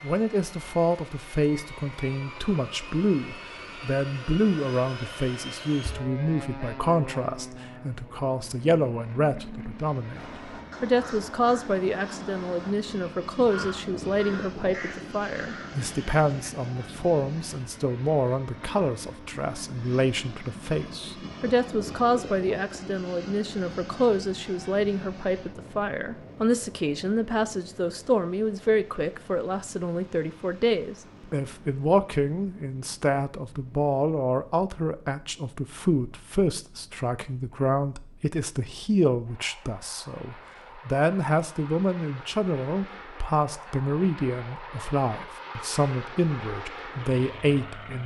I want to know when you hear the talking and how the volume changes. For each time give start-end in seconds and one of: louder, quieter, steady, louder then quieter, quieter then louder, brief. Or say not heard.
0.0-48.0 steady.